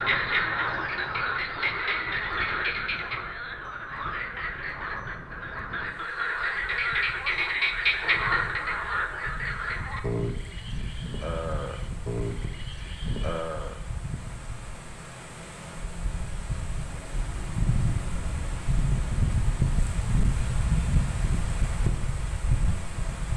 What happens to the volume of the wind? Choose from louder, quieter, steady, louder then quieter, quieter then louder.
louder.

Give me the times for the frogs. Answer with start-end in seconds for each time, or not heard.
0.0-13.8.